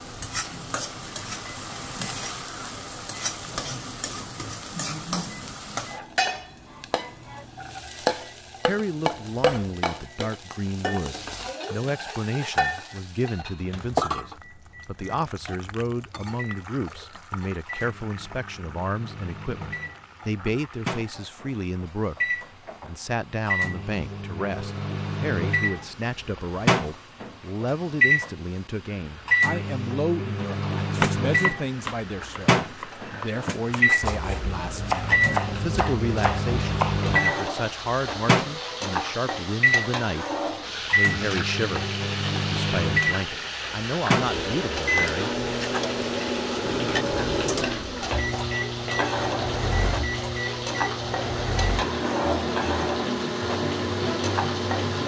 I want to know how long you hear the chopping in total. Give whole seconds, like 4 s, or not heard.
6 s.